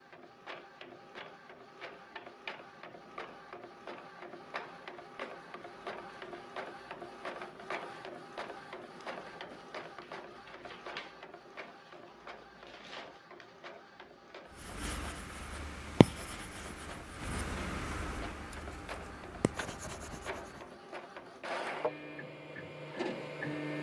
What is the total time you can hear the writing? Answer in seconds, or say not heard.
6 s.